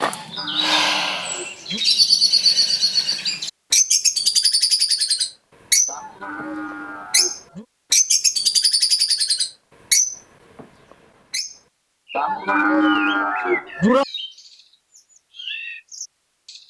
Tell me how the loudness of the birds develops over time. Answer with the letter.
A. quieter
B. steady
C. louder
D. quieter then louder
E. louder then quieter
A.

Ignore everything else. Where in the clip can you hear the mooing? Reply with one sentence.
You can hear the mooing from 0.0 to 1.8 s, from 5.8 to 7.7 s and from 12.2 to 14.1 s.